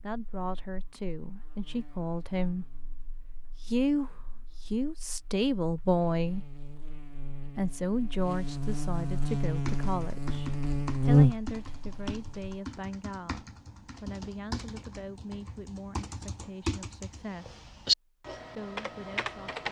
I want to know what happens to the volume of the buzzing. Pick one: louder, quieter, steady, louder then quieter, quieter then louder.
quieter then louder.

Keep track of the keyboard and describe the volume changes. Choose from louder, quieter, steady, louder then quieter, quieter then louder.
louder.